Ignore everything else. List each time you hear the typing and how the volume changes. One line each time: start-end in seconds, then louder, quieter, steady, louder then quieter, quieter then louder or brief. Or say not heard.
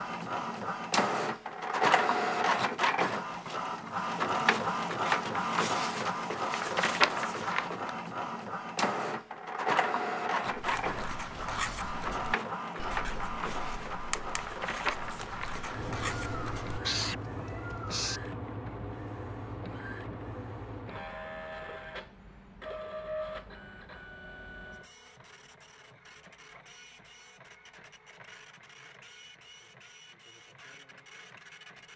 not heard.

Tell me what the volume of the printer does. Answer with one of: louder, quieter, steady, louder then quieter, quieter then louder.
quieter.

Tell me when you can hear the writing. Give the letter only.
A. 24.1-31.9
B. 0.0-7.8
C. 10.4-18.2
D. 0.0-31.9
C.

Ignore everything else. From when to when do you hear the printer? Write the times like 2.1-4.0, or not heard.
0.0-31.9.